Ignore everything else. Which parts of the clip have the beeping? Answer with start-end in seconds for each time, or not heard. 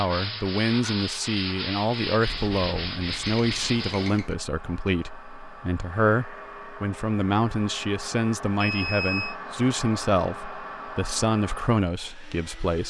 2.3-4.3, 8.6-9.3.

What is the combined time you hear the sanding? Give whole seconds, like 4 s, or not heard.
4 s.